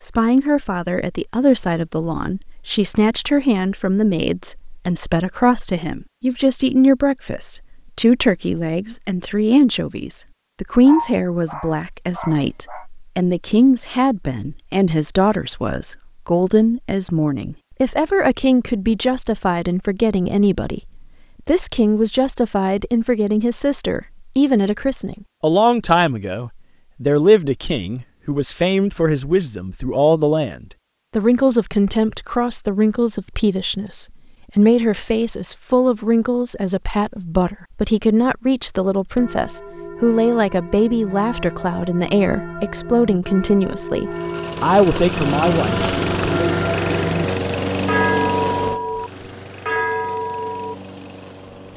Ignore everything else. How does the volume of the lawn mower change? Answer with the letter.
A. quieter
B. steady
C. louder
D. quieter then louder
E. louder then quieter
A.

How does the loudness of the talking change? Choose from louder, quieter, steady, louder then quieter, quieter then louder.
steady.